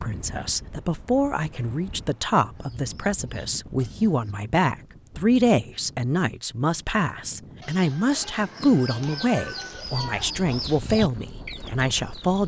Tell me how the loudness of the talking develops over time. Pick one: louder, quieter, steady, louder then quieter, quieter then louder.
steady.